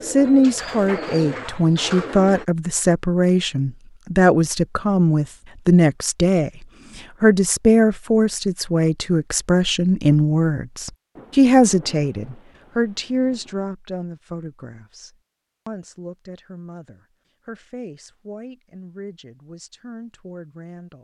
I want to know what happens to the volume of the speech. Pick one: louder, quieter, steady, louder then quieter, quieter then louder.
quieter.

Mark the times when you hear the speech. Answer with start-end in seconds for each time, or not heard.
0.0-20.9.